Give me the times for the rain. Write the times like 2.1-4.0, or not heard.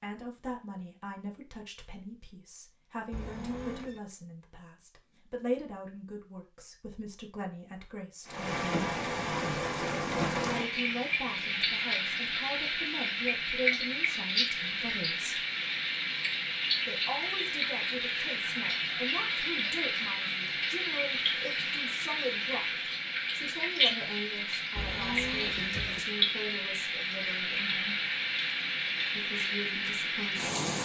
8.2-30.8.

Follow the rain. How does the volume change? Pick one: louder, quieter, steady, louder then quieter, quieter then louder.
steady.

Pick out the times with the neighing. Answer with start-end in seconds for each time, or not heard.
3.1-4.0, 24.8-26.0.